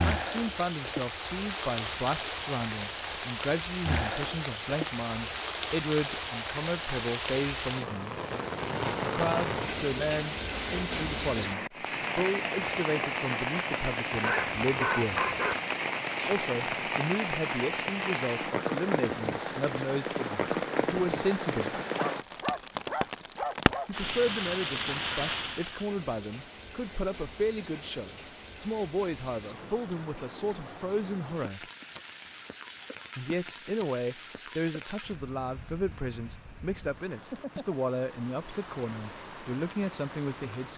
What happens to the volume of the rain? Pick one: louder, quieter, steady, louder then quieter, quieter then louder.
quieter.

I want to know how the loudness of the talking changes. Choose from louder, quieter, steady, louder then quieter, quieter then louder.
steady.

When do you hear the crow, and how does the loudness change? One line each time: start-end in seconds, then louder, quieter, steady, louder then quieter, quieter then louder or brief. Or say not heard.
not heard.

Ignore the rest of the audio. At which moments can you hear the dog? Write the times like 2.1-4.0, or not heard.
14.1-15.6, 21.9-23.9.